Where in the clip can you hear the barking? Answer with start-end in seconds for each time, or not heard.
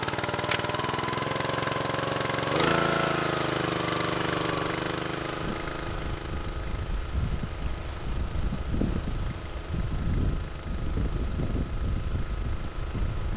not heard.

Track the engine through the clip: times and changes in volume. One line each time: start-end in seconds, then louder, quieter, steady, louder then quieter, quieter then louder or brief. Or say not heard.
0.0-13.3 quieter.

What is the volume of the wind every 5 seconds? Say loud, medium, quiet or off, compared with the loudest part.
off, loud, loud.